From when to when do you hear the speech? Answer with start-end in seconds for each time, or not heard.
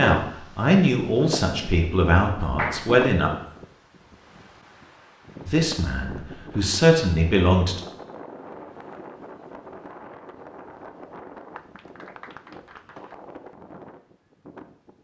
0.0-3.3, 5.5-7.8.